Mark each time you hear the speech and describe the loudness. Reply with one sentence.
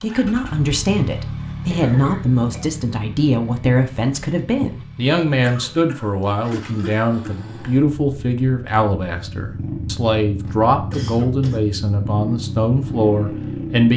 You can hear the speech from 0.0 to 13.9 s, at a steady volume.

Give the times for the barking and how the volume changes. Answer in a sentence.
You can't hear the barking here.